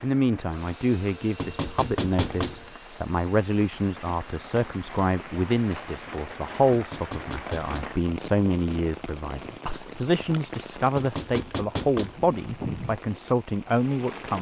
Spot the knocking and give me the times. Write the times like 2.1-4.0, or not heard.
1.4-2.6, 6.7-8.0, 10.9-12.2.